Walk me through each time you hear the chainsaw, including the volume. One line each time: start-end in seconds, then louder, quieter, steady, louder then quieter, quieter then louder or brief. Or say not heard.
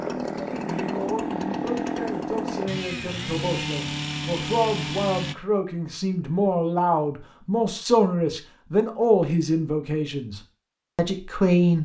0.0-5.3 steady.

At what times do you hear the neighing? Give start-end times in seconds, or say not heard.
not heard.